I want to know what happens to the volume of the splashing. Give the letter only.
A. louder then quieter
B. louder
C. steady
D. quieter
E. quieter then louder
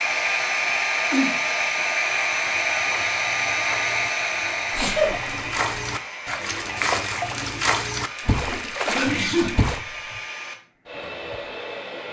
B.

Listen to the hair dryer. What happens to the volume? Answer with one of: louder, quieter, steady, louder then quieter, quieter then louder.
quieter.